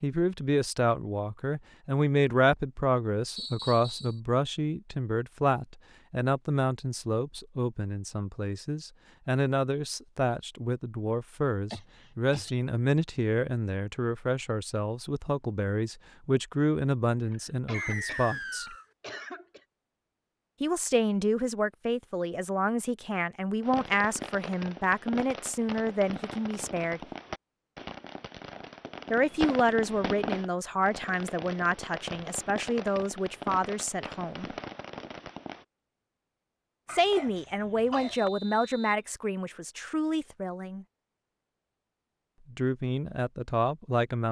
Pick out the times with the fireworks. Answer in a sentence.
You can hear the fireworks from 23.6 to 35.6 s.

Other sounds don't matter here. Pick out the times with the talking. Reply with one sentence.
The talking can be heard from 0.0 to 18.8 s, from 20.6 to 27.0 s, from 29.1 to 34.5 s, from 36.9 to 40.9 s and from 42.5 to 44.2 s.